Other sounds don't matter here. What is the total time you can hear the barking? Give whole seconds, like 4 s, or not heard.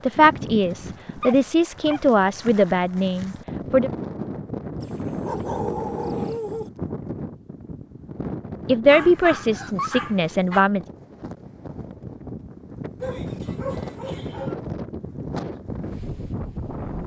6 s.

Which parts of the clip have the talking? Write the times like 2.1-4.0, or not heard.
0.1-3.9, 8.7-10.8.